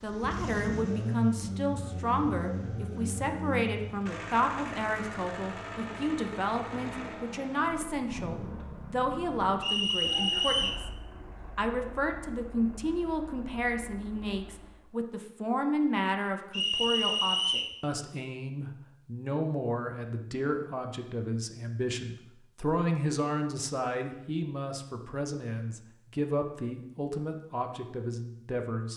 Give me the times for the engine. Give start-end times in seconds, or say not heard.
0.0-14.9.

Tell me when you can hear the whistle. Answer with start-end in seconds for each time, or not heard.
9.6-10.8, 16.5-17.8.